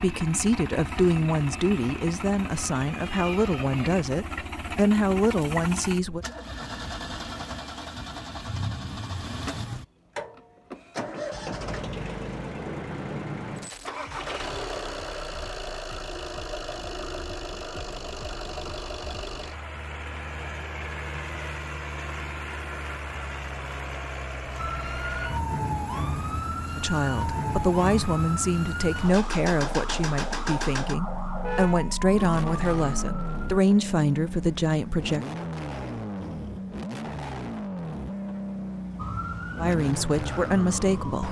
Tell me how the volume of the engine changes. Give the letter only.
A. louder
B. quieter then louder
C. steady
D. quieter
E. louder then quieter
C.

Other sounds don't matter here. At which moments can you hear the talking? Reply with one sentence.
The talking can be heard from 0.0 to 6.2 s, from 26.8 to 35.2 s and from 39.5 to 41.2 s.